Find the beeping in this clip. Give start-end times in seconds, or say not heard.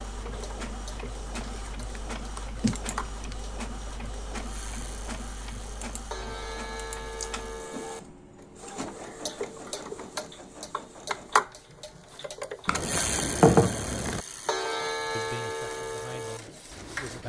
not heard.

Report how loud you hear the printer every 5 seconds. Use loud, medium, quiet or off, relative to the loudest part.
loud, loud, medium, medium.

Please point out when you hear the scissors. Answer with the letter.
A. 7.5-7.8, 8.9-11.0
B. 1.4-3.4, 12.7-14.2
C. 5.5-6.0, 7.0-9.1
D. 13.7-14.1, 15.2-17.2
B.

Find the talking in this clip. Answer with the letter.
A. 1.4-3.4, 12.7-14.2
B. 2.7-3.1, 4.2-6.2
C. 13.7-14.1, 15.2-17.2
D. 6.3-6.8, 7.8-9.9
C.